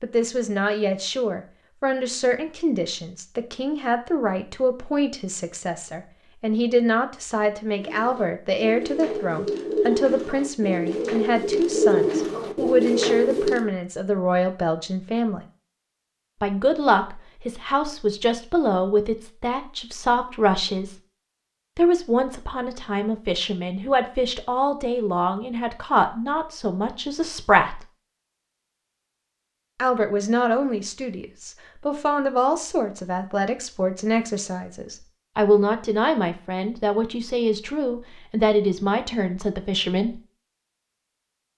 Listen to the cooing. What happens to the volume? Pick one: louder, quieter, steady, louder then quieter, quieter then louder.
louder.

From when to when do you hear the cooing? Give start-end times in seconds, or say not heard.
7.7-13.7.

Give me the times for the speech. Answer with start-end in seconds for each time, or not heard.
0.0-15.4, 16.4-20.9, 21.8-27.8, 29.8-40.2.